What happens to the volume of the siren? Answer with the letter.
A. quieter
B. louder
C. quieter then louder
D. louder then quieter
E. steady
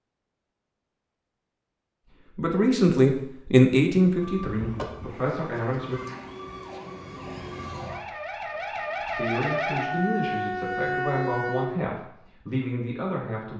B.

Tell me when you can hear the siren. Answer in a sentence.
You can hear the siren from 4.1 to 11.7 s.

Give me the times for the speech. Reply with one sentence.
You can hear the speech from 2.4 to 6.0 s and from 9.2 to 13.5 s.